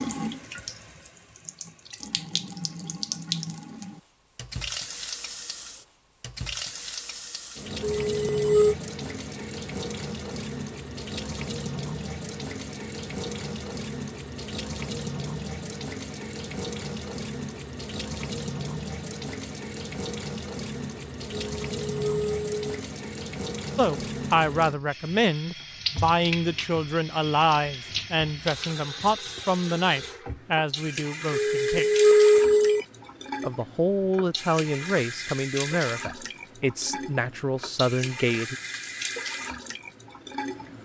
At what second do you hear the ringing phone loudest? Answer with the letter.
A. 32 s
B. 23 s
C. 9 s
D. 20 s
A.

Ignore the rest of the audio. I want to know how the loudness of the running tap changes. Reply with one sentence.
The volume of the running tap stays about the same.